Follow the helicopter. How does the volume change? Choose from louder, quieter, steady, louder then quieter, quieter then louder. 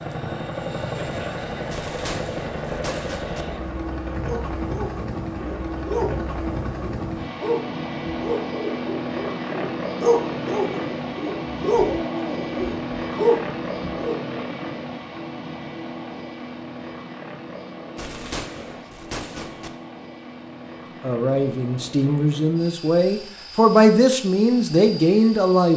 quieter.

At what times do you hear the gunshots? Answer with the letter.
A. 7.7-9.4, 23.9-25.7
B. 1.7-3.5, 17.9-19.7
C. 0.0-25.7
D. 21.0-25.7
B.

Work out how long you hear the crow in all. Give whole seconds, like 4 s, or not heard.
not heard.